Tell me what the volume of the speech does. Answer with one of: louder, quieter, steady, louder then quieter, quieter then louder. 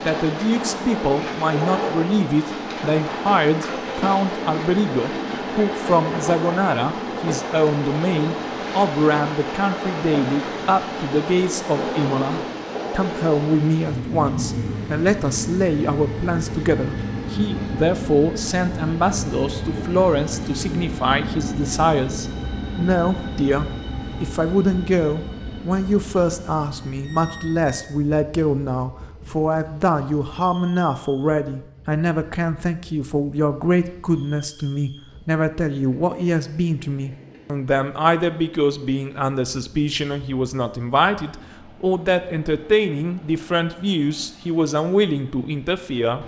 steady.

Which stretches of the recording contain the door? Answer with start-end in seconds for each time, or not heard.
not heard.